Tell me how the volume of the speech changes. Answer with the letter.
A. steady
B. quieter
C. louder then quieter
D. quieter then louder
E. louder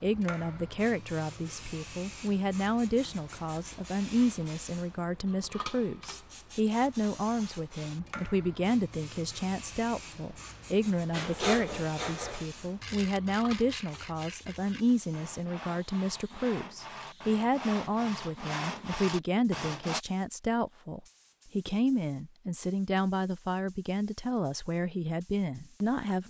A.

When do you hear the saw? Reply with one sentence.
The saw can be heard from 11.1 to 20.0 s.